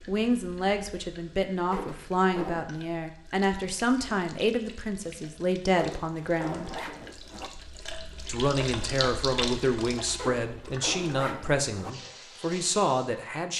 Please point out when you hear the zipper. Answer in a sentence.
The zipper can be heard from 1.7 to 2.7 s, from 5.8 to 7.5 s and from 10.2 to 11.9 s.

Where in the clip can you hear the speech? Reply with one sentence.
You can hear the speech from 0.1 to 6.8 s and from 8.2 to 13.5 s.